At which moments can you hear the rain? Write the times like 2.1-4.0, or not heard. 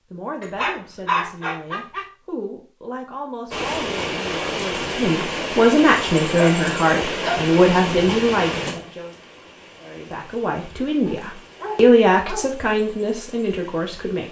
3.5-14.2.